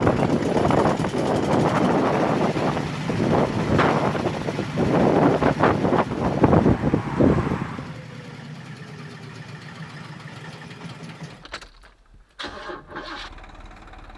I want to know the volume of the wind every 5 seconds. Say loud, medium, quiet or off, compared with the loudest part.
loud, loud, off.